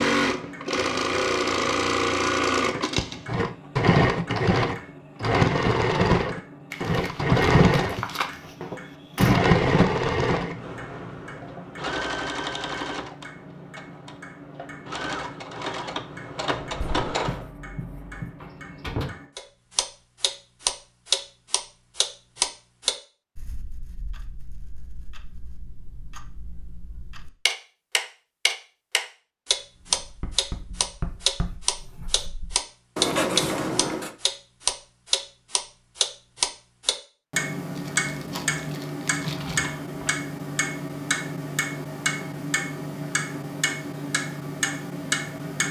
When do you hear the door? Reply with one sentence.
The door can be heard from 8.0 to 9.4 s, from 18.4 to 19.1 s and from 39.1 to 40.1 s.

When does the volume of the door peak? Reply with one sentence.
The volume of the door peaks at 9 seconds.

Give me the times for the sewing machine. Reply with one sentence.
The sewing machine can be heard from 0.0 to 17.4 s.